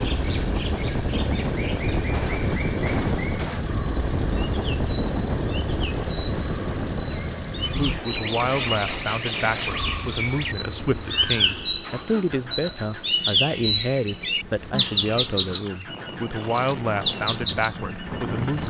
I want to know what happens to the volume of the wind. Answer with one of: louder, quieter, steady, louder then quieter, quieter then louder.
quieter then louder.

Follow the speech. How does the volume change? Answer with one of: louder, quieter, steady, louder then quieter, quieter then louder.
steady.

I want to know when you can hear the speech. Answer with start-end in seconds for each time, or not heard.
7.7-18.6.